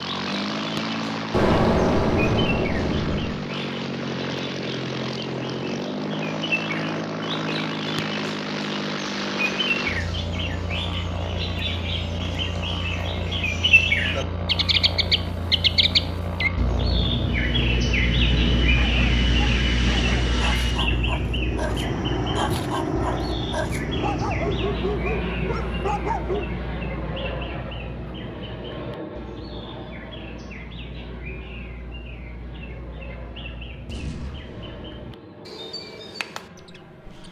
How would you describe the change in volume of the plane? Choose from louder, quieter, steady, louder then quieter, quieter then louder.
quieter.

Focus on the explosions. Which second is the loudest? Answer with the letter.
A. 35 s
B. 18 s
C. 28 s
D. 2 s
D.